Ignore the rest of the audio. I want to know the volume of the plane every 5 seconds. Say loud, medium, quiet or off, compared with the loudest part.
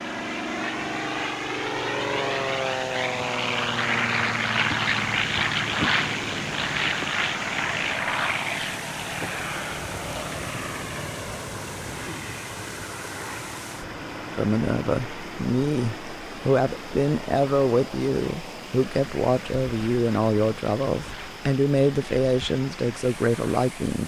loud, loud, medium, quiet, quiet.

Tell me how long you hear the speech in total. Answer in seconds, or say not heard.
10 s.